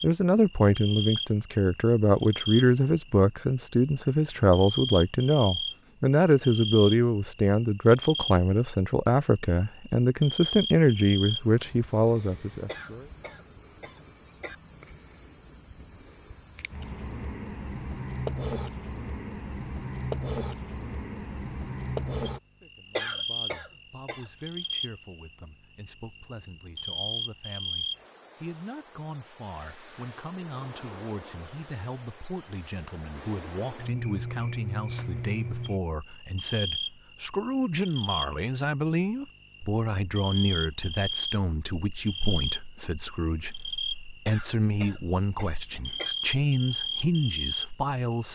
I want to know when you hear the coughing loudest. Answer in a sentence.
The loudest moment of the coughing is at 23 seconds.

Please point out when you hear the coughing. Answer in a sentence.
You can hear the coughing from 12.7 to 14.6 s, from 22.9 to 24.2 s and from 44.2 to 46.1 s.